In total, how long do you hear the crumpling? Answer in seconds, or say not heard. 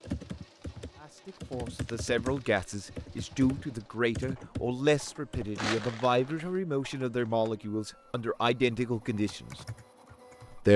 2 s.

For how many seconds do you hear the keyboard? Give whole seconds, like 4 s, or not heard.
7 s.